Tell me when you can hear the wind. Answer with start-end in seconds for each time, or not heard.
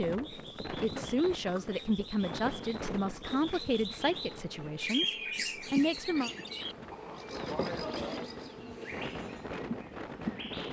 0.0-10.6.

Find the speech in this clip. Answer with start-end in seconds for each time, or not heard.
0.0-6.3.